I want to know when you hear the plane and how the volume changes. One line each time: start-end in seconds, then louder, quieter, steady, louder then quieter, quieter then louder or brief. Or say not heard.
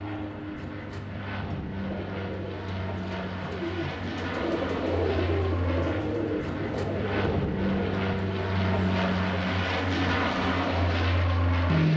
0.0-11.9 louder.